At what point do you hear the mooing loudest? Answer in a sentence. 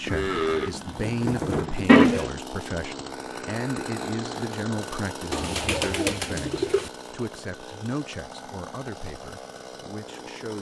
The loudest moment of the mooing is at 2 seconds.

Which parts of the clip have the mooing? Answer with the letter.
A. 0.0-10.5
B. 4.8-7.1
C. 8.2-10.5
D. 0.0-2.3
D.